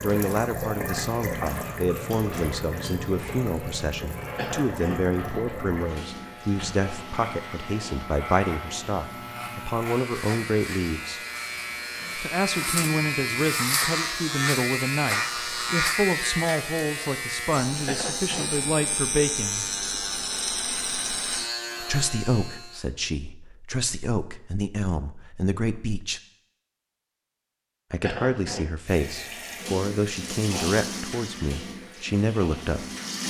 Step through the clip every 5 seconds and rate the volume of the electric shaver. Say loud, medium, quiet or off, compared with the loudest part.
quiet, medium, loud, loud, loud, off, off.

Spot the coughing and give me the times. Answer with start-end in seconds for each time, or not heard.
4.3-5.0, 17.9-18.4, 28.0-28.6.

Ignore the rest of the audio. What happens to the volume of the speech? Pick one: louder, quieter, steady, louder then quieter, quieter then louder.
steady.